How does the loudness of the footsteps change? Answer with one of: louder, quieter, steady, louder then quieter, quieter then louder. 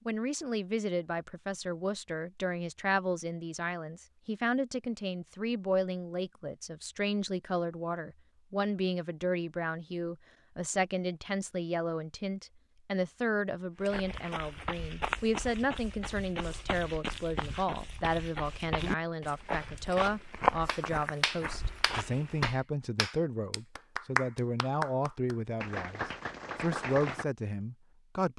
louder then quieter.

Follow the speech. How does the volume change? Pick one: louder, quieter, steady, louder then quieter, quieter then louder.
steady.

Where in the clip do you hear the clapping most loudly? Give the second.
24 s.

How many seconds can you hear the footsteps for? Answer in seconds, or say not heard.
9 s.